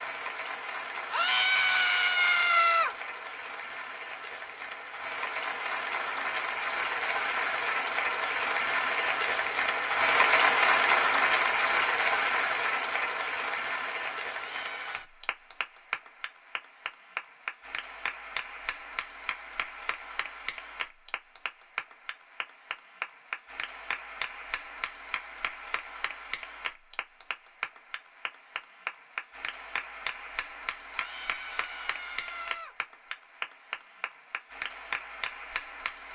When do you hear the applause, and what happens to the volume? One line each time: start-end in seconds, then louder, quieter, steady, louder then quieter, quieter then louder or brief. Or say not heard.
0.0-36.0 louder then quieter.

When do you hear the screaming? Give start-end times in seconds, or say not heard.
1.1-3.0, 14.3-15.1, 30.9-32.8.